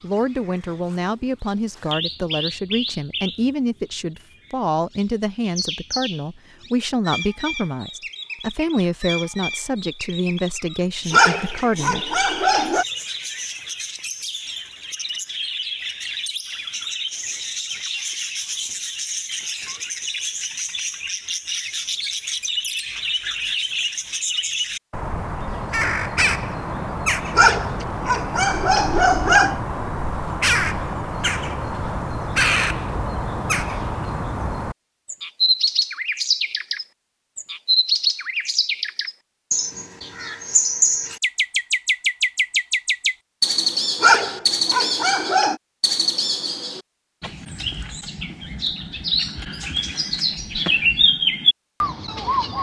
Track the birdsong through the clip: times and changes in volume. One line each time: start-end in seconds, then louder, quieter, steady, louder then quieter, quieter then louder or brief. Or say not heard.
0.0-52.5 louder.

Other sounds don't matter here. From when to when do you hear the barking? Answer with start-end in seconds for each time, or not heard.
11.1-12.8, 27.3-29.6, 44.0-45.5.